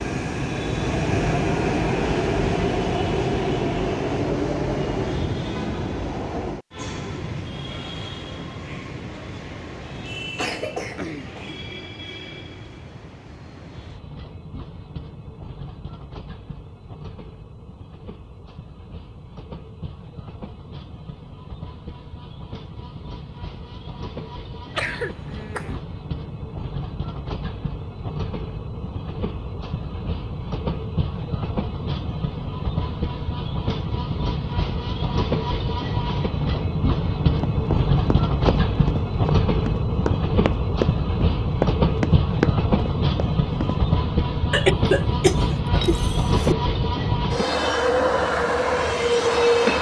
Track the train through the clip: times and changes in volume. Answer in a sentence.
You can hear the train from 0.0 to 49.7 s, getting quieter then louder.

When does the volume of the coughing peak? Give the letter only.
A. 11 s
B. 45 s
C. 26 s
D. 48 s
B.